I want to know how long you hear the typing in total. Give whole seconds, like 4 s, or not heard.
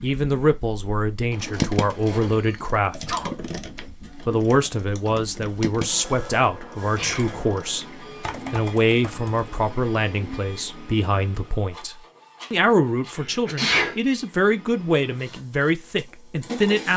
8 s.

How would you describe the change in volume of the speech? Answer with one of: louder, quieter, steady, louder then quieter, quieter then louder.
steady.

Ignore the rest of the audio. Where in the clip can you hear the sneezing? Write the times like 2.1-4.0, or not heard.
2.3-3.4, 7.0-7.5, 13.2-13.9.